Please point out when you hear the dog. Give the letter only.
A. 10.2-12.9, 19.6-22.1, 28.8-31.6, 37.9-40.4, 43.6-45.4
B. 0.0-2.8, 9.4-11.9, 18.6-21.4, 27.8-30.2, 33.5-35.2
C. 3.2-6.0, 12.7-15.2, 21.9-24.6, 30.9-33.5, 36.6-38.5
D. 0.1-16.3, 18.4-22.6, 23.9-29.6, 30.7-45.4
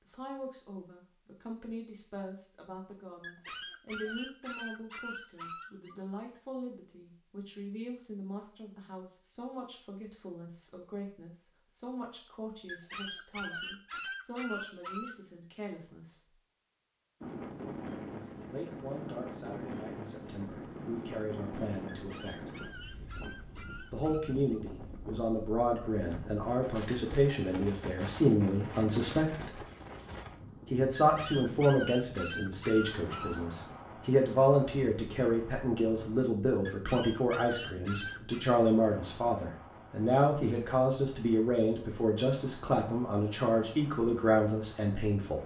C.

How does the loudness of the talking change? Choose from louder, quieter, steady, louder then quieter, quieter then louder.
louder.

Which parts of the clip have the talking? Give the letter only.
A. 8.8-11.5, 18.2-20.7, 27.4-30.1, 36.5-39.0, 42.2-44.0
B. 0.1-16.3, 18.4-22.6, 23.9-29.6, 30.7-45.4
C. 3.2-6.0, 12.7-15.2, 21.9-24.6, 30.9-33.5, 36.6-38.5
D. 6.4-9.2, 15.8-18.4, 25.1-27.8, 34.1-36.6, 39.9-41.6
B.